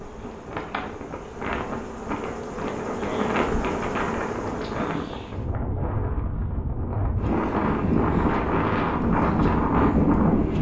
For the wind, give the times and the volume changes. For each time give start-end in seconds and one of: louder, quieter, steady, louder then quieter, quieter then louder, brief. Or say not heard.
0.0-10.5 louder.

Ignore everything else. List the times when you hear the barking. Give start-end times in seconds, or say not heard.
not heard.